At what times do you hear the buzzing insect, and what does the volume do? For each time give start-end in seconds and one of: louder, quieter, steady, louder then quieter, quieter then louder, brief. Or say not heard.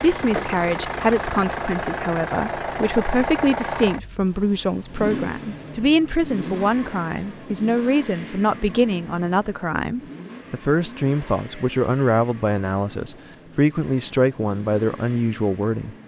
not heard.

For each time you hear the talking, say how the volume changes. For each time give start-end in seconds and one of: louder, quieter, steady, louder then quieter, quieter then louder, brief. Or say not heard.
0.0-16.0 steady.